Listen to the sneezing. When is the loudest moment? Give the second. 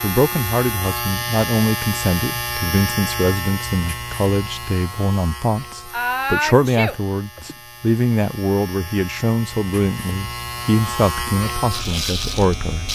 6 s.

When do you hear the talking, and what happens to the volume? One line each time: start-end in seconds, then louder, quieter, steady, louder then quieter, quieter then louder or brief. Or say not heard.
0.0-12.9 steady.